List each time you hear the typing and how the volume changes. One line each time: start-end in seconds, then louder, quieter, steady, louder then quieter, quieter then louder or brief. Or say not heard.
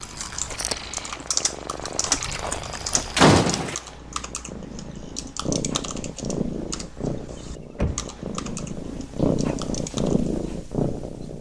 0.0-10.3 quieter.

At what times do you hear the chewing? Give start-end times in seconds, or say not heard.
0.0-3.2.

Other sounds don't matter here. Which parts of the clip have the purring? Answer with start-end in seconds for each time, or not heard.
0.0-11.3.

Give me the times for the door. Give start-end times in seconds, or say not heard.
3.1-3.8, 7.8-8.2.